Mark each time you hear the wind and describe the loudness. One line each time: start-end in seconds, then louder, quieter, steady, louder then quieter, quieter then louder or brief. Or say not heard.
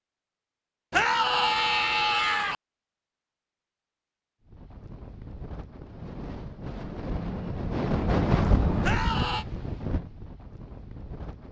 4.5-11.4 louder then quieter.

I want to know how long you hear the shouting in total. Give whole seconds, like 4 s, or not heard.
2 s.